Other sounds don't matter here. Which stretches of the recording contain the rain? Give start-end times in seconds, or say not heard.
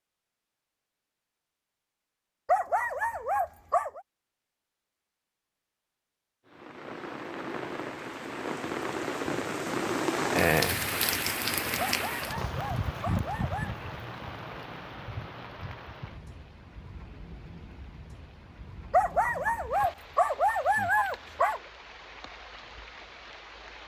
6.5-23.8.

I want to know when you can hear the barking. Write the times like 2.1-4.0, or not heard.
2.5-4.0, 11.9-13.7, 18.9-21.6.